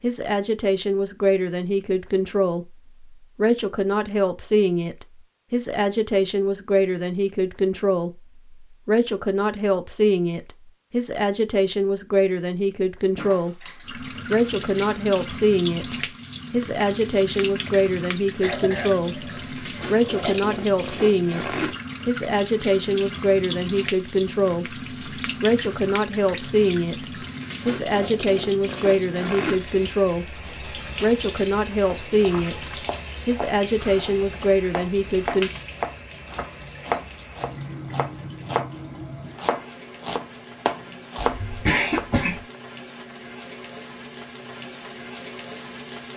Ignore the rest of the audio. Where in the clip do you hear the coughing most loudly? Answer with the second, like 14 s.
42 s.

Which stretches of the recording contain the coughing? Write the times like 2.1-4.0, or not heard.
18.4-20.4, 41.4-42.5.